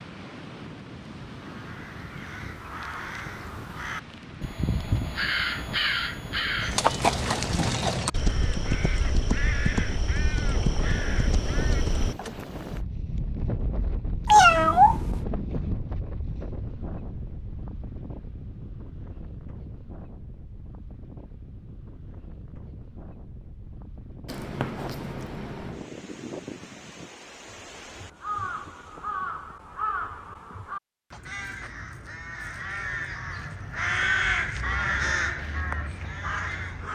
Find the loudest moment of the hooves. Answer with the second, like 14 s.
7 s.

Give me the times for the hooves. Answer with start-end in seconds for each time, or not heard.
6.6-12.3.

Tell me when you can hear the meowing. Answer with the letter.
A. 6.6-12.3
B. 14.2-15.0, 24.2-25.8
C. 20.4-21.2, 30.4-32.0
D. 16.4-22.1
B.